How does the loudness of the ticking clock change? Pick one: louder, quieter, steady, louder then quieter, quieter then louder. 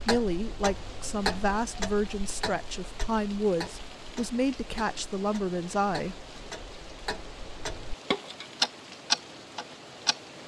quieter then louder.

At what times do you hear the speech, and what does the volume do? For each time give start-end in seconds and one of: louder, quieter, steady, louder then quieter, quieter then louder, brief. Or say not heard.
0.1-6.2 steady.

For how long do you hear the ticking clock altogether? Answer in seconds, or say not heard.
10 s.